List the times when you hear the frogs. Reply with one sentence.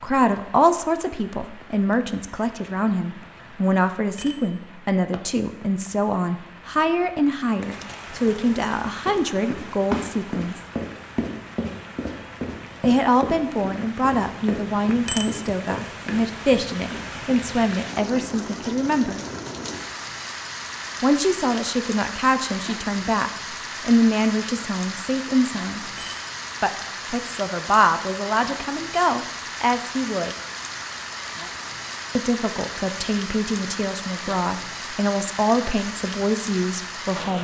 You can't hear the frogs here.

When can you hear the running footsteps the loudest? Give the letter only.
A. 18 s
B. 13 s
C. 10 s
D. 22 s
C.